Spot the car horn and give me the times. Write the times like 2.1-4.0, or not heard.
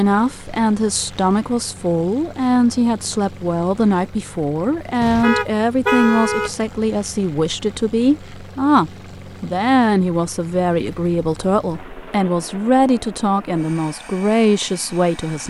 5.0-6.5.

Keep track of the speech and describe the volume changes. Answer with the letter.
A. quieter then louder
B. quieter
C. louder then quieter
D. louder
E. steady
E.